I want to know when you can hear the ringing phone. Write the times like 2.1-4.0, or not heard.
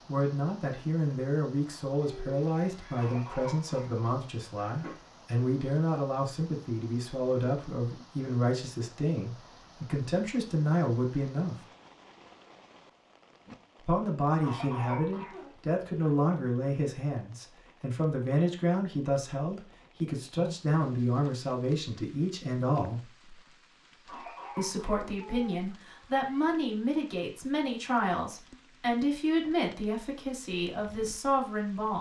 not heard.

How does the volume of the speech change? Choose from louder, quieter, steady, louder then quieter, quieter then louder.
steady.